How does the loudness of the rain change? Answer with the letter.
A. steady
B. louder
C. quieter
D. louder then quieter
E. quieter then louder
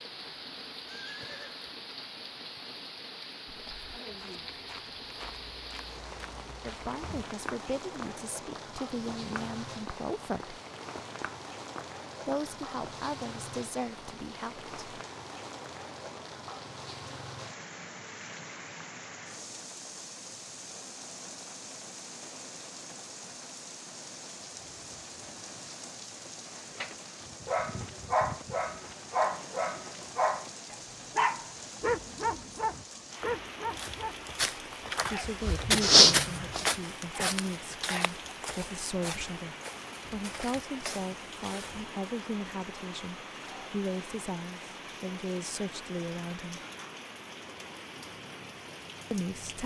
A.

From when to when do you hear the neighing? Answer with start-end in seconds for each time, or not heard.
0.8-1.6.